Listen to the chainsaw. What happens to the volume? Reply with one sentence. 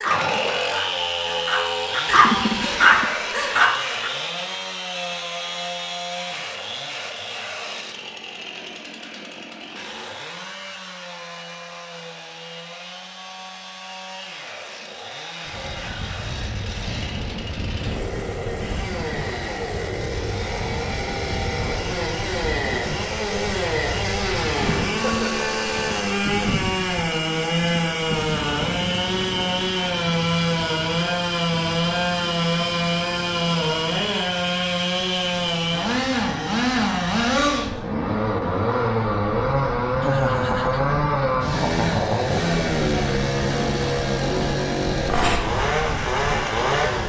The volume of the chainsaw goes down, then up.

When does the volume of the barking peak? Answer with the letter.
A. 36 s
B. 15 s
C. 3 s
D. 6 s
C.